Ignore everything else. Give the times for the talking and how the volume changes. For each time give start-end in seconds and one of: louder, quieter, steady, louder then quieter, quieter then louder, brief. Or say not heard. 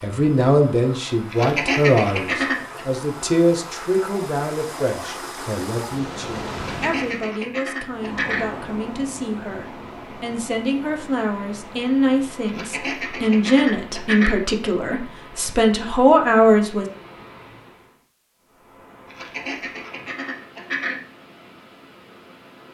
0.0-16.9 quieter then louder.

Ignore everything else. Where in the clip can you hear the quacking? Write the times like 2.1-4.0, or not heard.
1.3-2.9, 6.5-8.4, 12.4-14.3, 19.1-21.0.